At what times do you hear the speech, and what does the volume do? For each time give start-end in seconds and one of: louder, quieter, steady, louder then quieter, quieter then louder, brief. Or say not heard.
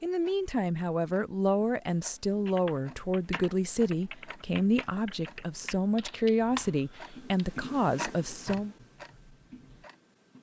0.0-8.8 steady.